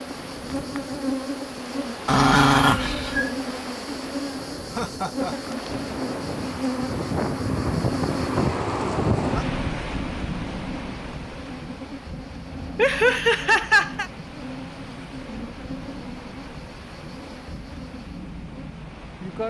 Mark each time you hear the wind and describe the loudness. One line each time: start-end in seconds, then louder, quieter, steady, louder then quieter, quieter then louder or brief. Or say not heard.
0.0-19.4 louder then quieter.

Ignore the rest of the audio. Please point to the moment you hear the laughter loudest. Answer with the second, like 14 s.
14 s.